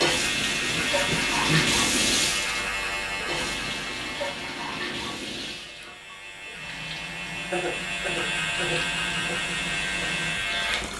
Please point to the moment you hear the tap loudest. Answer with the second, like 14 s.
2 s.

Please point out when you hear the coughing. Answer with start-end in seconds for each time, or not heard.
0.7-1.7, 7.5-9.4.